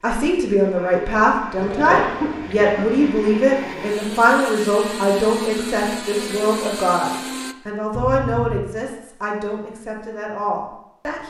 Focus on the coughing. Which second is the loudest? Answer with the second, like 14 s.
2 s.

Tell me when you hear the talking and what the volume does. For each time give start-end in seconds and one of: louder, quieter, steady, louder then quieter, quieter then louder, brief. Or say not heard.
0.0-11.2 quieter.